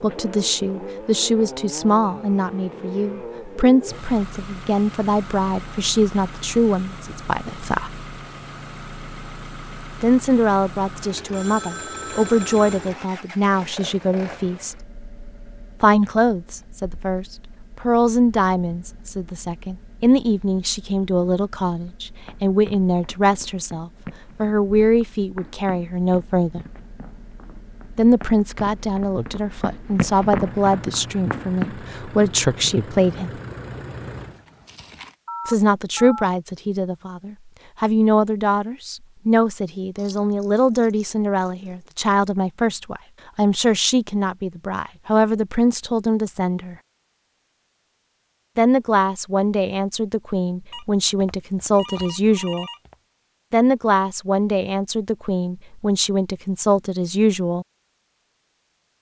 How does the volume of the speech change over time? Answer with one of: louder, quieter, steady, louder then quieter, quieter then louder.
steady.